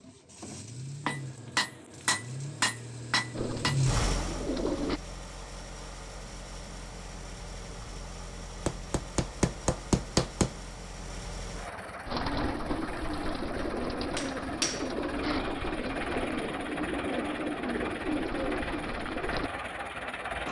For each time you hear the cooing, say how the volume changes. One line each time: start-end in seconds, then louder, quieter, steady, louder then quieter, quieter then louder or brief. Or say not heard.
3.4-5.0 brief
12.1-19.5 steady.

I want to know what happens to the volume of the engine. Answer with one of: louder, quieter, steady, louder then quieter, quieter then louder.
quieter then louder.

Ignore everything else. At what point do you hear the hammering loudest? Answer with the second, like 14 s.
10 s.